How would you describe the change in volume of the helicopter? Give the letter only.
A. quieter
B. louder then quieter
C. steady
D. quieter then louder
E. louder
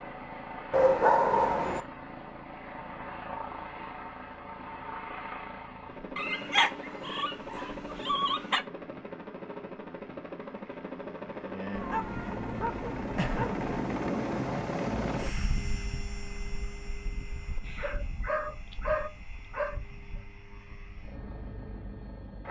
B.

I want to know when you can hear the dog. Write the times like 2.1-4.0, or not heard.
0.7-1.8, 6.2-8.7, 11.8-13.7, 17.6-19.8.